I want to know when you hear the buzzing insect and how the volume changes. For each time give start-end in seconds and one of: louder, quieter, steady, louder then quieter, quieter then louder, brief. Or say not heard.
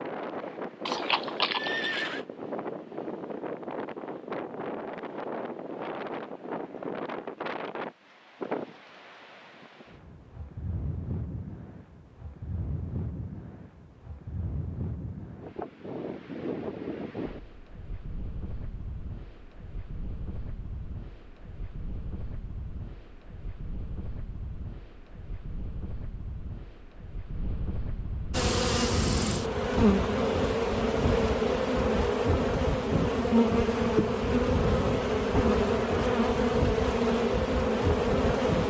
28.3-38.6 steady.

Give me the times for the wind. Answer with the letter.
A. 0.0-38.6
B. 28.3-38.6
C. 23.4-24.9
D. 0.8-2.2
A.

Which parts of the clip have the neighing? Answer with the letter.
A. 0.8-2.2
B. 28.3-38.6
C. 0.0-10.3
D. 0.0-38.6
A.